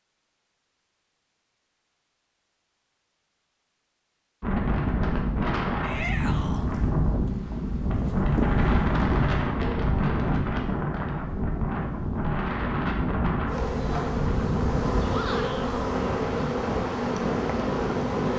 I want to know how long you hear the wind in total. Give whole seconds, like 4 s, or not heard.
14 s.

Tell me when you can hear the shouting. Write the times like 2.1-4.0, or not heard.
5.8-6.7, 15.1-15.7.